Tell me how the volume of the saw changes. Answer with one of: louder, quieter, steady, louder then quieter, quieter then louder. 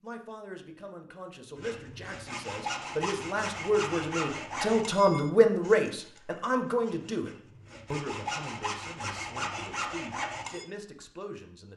quieter then louder.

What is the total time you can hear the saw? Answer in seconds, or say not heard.
9 s.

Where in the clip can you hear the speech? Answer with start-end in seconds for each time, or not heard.
0.0-7.3, 7.9-11.7.